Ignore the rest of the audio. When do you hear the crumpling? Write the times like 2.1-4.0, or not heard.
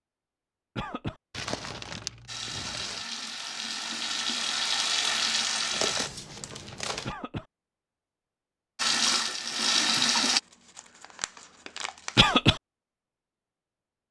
1.3-3.0, 5.7-7.2, 10.3-12.3.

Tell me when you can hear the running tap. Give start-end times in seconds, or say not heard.
2.2-6.1, 8.8-10.4.